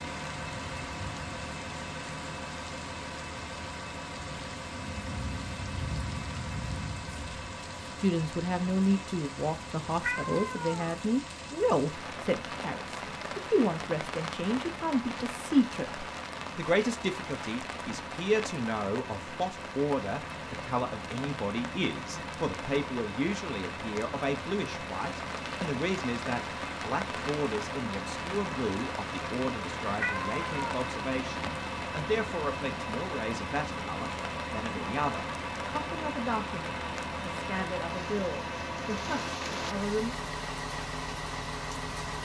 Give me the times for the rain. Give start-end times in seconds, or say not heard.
0.0-42.2.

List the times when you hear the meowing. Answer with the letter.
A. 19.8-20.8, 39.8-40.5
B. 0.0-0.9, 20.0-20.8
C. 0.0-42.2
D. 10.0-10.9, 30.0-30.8
D.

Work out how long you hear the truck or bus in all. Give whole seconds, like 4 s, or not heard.
42 s.